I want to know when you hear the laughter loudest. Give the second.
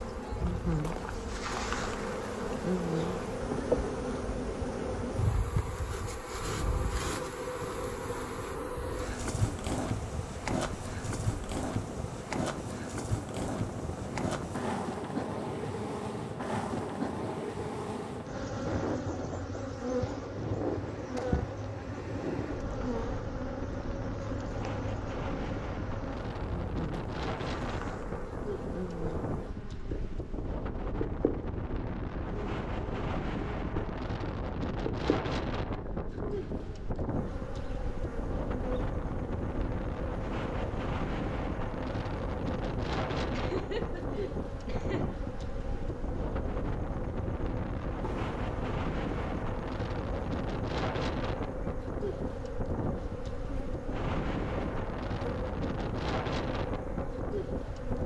44 s.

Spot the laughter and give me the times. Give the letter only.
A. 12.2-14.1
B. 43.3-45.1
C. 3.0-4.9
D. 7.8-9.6
B.